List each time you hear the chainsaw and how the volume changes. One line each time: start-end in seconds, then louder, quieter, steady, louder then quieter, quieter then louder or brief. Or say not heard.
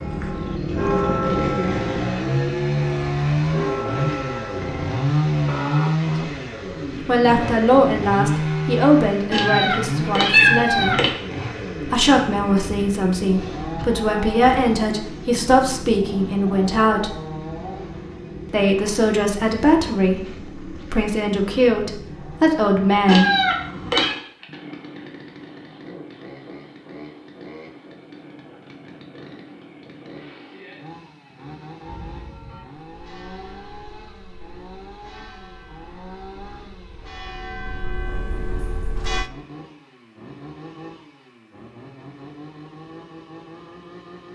0.0-44.2 quieter.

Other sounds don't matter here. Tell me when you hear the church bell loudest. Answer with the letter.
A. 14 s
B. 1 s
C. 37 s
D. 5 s
B.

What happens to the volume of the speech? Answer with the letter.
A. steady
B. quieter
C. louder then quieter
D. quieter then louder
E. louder
A.